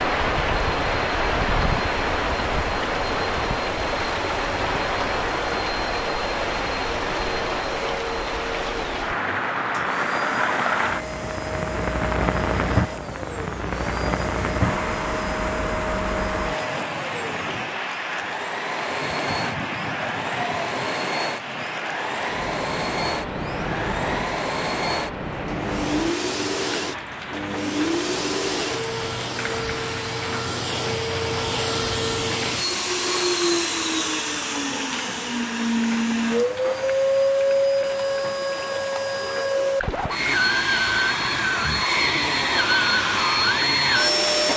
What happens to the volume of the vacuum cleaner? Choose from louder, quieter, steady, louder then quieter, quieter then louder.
louder.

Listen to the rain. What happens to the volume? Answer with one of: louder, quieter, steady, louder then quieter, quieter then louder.
quieter.